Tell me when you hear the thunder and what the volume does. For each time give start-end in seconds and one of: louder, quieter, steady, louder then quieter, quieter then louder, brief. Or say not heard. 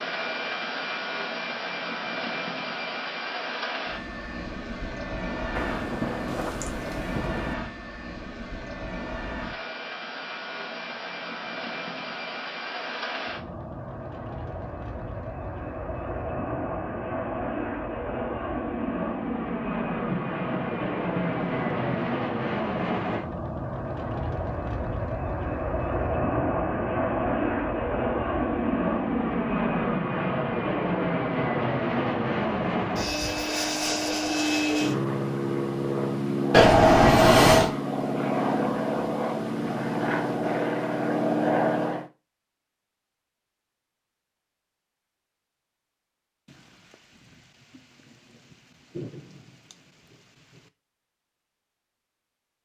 5.5-7.5 brief
20.1-22.1 brief
46.5-50.7 louder then quieter.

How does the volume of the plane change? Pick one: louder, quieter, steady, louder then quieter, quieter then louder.
louder.